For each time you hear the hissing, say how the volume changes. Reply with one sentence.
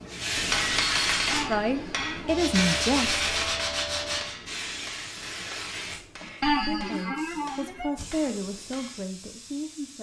You can hear the hissing from 0.0 to 9.9 s, getting quieter.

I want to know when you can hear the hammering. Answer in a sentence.
You can hear the hammering from 0.3 to 9.1 s.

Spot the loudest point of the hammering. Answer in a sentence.
The loudest moment of the hammering is at 1 second.